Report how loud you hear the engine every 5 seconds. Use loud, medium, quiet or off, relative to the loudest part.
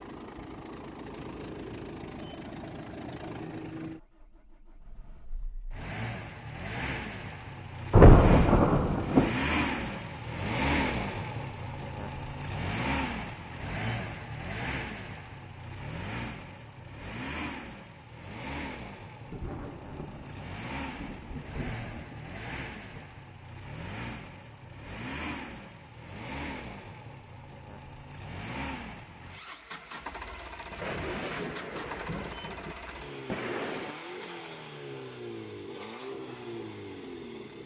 medium, loud, loud, medium, medium, medium, medium, medium.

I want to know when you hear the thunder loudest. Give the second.
8 s.